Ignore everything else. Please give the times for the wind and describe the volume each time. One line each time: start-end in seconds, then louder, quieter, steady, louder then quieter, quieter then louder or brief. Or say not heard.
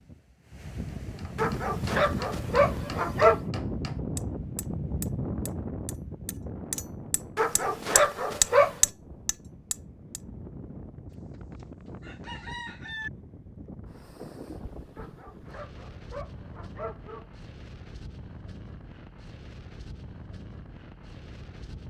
0.0-21.8 quieter.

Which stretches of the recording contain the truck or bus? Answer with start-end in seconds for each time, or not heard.
not heard.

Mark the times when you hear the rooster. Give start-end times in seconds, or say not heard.
11.1-13.1.